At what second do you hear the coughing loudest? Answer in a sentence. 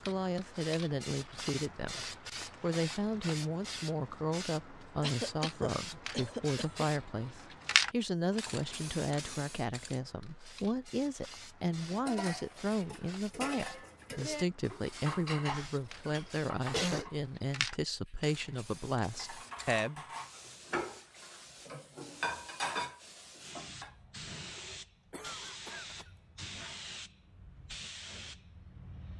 The loudest moment of the coughing is at 17 seconds.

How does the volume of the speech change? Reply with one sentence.
The loudness of the speech stays about the same.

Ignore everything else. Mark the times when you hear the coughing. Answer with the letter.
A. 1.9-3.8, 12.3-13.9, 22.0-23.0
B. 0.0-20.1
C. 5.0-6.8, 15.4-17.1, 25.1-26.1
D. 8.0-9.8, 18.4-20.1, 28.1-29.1
C.